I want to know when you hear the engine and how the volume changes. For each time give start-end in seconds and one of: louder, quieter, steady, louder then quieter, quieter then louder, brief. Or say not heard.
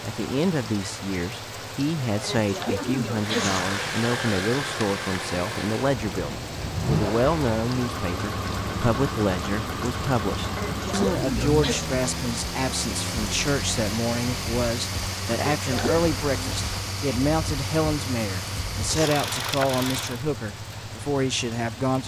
3.1-20.2 steady.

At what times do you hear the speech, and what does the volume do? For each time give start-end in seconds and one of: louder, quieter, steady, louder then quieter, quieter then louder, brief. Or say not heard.
0.0-22.0 steady.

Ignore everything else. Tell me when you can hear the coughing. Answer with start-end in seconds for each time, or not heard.
2.2-3.6, 10.6-11.9, 15.4-16.1.